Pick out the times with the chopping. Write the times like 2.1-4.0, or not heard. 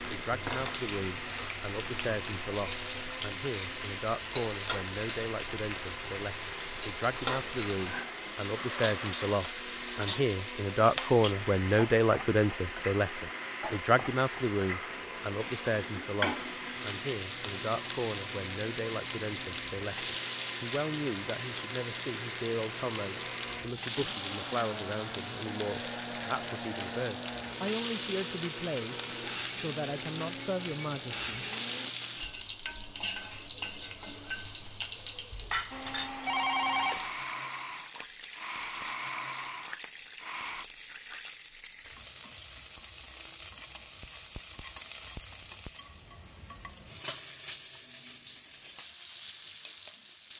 not heard.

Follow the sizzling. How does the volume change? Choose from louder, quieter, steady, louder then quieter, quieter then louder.
steady.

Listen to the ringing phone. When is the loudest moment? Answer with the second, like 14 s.
37 s.